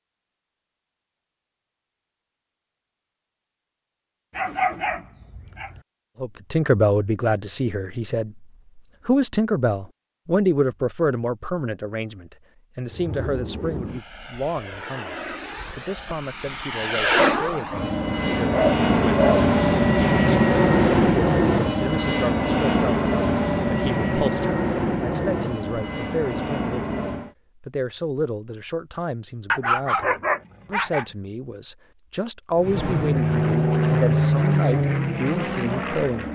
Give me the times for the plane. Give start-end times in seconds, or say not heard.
12.8-27.3, 32.5-36.2.